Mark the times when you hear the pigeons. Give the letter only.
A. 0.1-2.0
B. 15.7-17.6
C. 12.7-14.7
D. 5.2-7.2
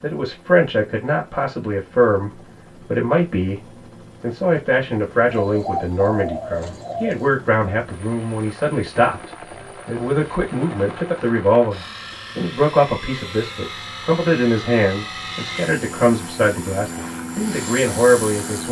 D.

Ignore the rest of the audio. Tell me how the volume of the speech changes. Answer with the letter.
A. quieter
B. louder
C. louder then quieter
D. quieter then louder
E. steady
E.